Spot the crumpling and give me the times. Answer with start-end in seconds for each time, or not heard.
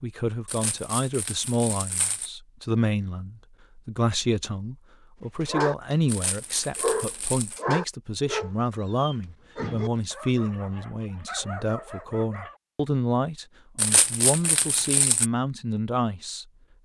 0.5-2.3, 6.0-7.6, 13.8-15.3.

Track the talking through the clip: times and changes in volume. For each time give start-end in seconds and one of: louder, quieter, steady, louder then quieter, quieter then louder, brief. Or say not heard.
0.0-16.8 steady.